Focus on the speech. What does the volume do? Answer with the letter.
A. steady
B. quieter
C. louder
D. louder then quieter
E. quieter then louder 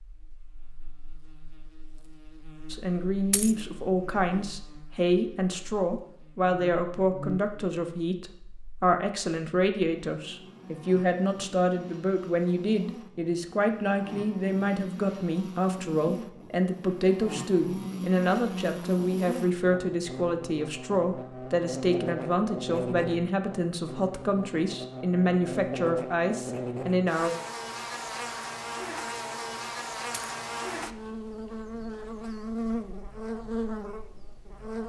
A.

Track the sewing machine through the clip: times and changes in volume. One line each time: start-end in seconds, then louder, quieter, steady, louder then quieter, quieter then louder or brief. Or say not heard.
not heard.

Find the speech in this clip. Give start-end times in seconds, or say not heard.
2.7-27.3.